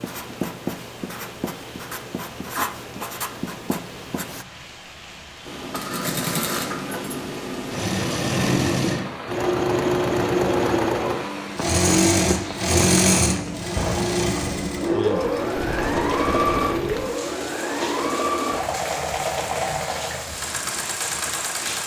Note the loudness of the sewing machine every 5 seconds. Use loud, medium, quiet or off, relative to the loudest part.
off, loud, loud, loud, medium.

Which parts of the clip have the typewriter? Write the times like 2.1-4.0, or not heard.
not heard.